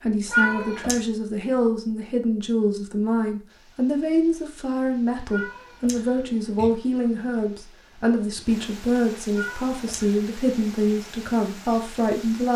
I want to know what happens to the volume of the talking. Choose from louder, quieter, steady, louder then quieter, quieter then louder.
steady.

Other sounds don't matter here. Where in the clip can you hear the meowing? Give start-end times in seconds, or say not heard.
0.2-1.0, 5.3-6.7, 9.3-10.2.